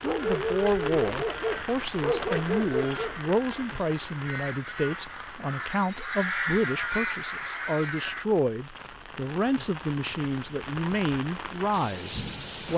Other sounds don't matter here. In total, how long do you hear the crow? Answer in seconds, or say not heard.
8 s.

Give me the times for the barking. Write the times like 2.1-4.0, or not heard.
0.0-3.4.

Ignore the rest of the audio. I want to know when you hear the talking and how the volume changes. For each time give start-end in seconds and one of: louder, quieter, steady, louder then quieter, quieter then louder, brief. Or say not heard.
0.0-12.7 steady.